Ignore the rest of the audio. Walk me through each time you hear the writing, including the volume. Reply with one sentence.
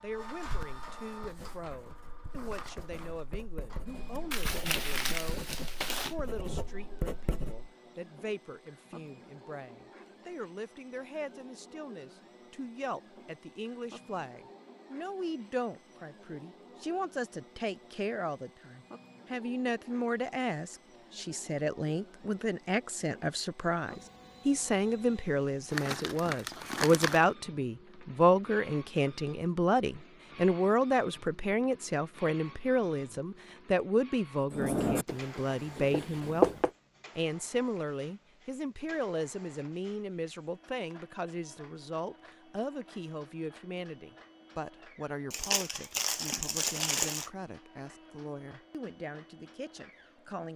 You can hear the writing from 1.2 to 7.7 s, getting louder; and briefly from 34.5 to 36.7 s.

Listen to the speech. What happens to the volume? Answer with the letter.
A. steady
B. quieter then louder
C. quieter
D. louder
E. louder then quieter
E.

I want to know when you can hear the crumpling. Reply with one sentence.
The crumpling can be heard from 4.3 to 6.2 s, from 25.7 to 27.2 s and from 45.3 to 47.3 s.